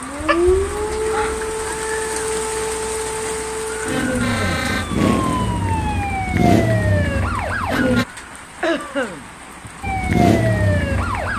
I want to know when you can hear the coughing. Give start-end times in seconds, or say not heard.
0.2-1.6, 8.6-9.7.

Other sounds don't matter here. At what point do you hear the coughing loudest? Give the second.
9 s.